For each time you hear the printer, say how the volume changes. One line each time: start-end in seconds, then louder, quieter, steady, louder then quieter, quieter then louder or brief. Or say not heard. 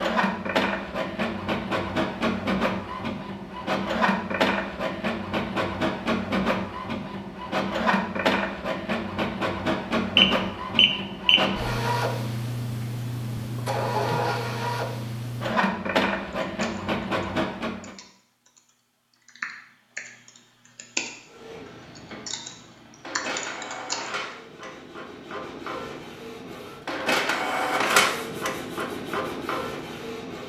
0.0-17.9 steady
21.2-30.4 louder then quieter.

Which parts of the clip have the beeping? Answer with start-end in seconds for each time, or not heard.
10.2-11.4.